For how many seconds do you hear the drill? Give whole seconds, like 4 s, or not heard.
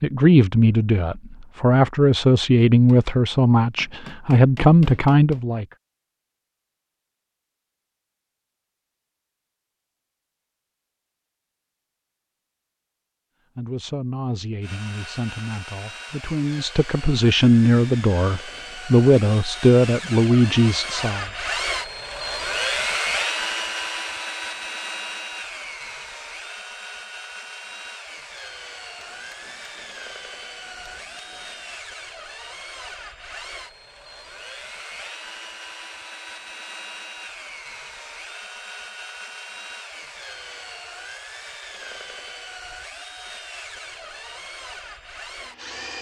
31 s.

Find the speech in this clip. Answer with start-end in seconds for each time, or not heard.
0.0-5.7, 13.6-21.2.